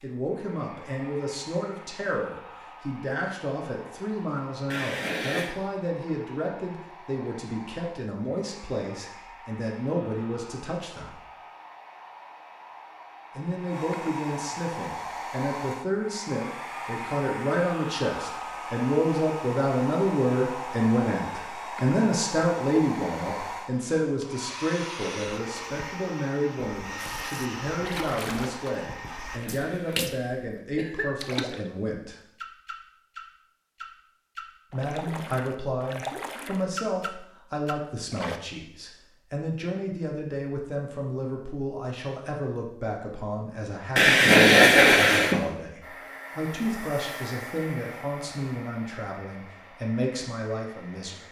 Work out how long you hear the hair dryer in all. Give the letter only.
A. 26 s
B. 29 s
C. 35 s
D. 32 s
C.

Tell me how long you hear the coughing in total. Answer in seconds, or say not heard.
4 s.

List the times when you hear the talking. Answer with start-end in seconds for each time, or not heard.
0.0-11.2, 13.3-32.2, 34.7-51.2.